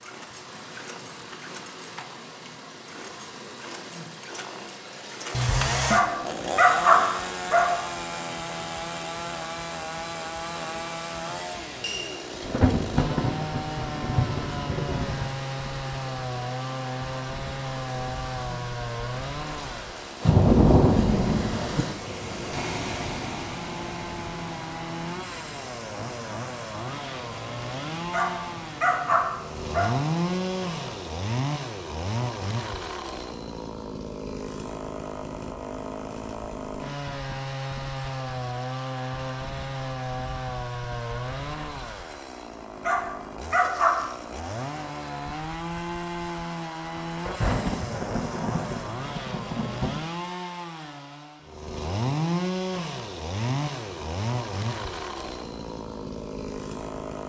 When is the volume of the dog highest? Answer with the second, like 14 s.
7 s.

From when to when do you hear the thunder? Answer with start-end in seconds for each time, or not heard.
12.4-15.3, 20.2-21.9, 47.0-50.0.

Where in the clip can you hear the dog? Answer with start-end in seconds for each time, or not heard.
5.9-7.8, 28.1-29.9, 42.8-44.5.